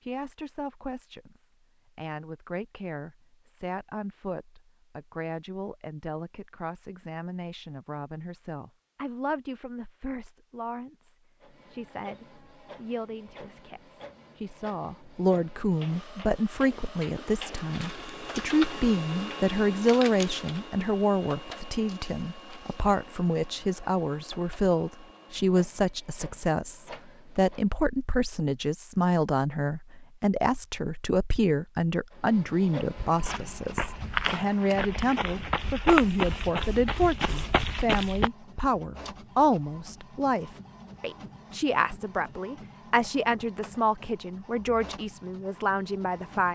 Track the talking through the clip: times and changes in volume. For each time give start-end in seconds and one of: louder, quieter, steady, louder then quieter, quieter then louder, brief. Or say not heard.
0.0-46.5 louder.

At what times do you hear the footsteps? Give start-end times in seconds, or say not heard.
33.0-38.3.